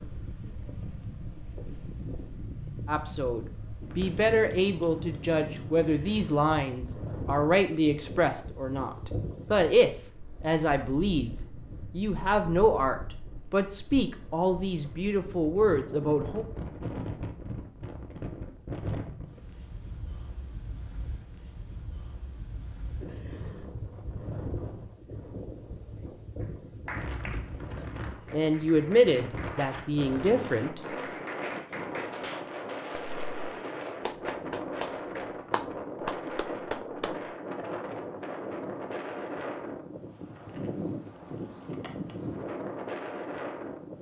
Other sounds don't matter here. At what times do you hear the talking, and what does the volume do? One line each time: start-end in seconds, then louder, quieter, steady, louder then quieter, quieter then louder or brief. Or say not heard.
2.9-16.4 steady
28.3-31.2 brief.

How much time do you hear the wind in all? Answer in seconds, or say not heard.
44 s.